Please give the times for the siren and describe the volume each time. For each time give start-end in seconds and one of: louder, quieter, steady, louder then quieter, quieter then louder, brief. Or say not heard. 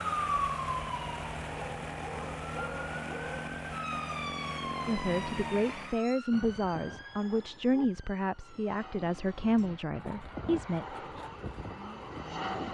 0.0-12.6 quieter then louder.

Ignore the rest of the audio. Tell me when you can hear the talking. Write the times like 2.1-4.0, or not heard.
4.8-10.8.